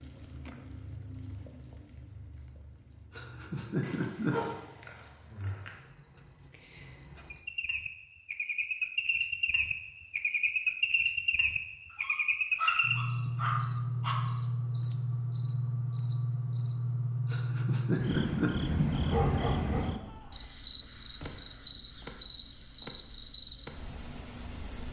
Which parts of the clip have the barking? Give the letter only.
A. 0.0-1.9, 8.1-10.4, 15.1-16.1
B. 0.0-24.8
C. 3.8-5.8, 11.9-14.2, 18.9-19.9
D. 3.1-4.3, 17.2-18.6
C.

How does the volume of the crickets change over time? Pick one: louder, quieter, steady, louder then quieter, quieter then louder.
louder.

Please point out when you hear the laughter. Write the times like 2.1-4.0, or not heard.
3.1-4.3, 17.2-18.6.